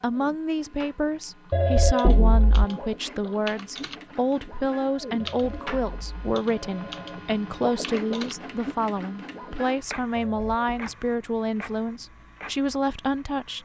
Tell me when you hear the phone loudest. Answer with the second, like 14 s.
2 s.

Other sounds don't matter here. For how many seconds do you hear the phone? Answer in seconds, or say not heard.
4 s.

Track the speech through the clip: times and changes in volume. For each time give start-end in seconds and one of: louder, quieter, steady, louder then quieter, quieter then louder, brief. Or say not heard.
0.0-13.5 steady.